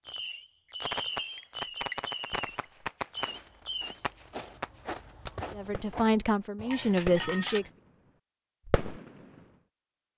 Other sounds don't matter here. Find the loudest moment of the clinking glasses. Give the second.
7 s.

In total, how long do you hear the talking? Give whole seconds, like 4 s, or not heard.
2 s.